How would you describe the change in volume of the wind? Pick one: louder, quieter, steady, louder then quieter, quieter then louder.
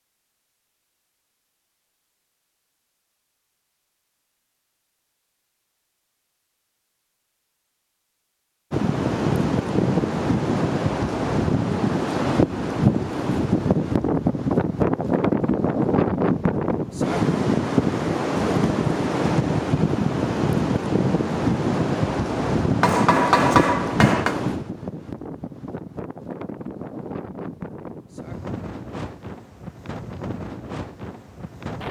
quieter.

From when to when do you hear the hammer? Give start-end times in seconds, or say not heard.
22.8-24.4.